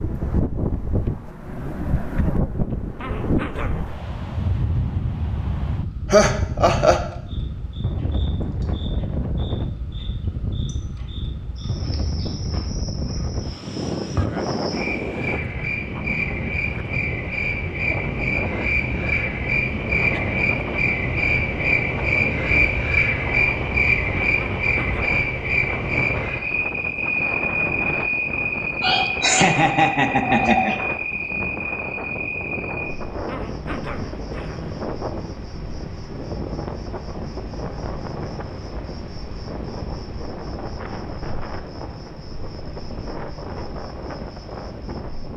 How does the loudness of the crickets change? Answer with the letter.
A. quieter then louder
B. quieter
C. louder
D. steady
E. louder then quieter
E.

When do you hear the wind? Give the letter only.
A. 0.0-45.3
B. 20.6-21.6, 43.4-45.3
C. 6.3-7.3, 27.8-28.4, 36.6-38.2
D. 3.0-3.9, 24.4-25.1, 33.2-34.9
A.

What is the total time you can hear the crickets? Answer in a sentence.
You can hear the crickets for 38 seconds altogether.